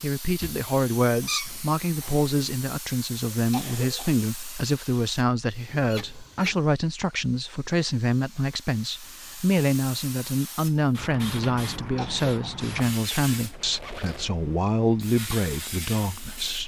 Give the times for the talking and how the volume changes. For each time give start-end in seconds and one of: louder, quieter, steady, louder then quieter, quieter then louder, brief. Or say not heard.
0.0-16.6 steady.